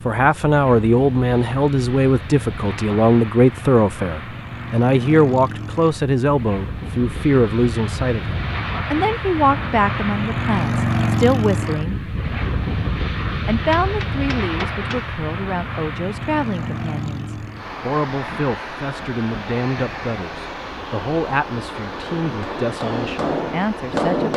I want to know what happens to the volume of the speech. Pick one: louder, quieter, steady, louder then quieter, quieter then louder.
quieter.